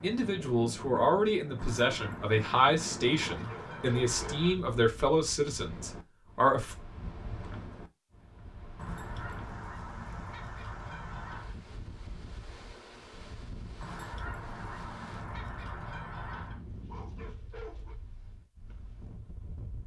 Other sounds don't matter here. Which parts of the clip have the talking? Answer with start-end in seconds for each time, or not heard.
0.0-6.8.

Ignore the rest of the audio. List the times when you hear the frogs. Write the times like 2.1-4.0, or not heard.
not heard.